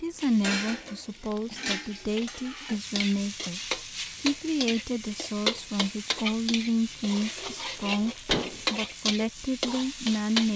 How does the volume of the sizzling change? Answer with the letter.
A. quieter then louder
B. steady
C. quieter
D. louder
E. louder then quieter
D.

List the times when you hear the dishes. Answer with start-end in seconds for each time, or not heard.
0.4-2.8, 8.2-8.7.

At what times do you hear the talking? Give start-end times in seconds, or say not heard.
0.0-10.5.